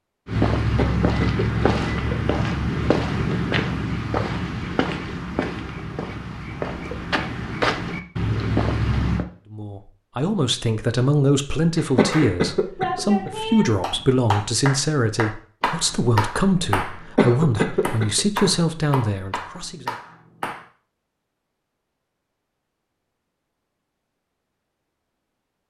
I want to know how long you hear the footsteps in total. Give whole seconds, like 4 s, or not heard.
9 s.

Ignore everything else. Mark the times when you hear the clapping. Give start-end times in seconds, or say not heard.
11.8-20.6.